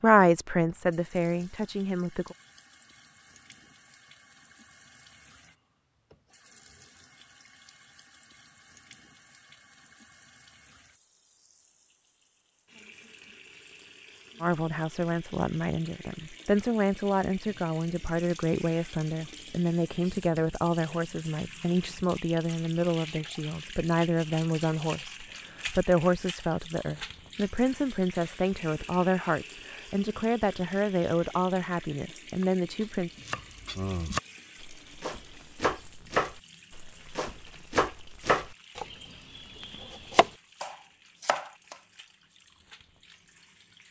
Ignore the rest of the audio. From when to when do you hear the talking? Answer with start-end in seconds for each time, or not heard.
0.0-2.4, 14.4-33.1.